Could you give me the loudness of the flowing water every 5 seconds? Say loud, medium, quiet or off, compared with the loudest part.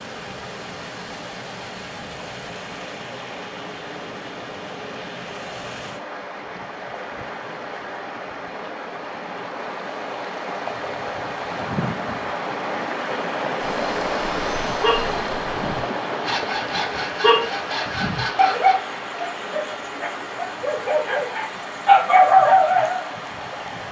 medium, medium, loud, loud, medium.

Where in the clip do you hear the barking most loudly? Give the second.
22 s.